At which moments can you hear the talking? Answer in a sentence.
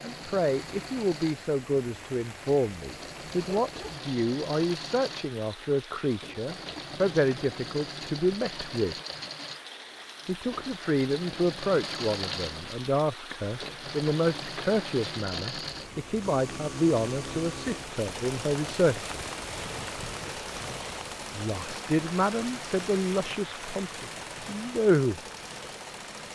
You can hear the talking from 0.0 to 8.9 s, from 10.2 to 19.1 s and from 21.3 to 25.2 s.